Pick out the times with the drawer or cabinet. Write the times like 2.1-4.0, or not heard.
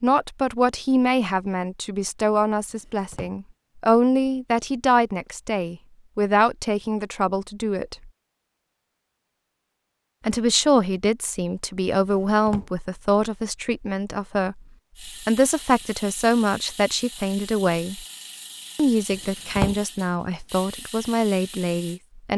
2.7-3.4, 12.1-12.7, 19.1-19.8.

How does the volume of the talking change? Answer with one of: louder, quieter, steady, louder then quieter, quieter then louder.
steady.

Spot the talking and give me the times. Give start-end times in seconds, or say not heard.
0.0-8.1, 10.2-18.1, 18.8-22.3.